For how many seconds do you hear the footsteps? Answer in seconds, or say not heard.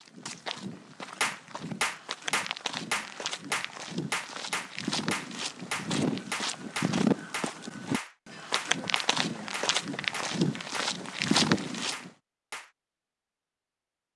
12 s.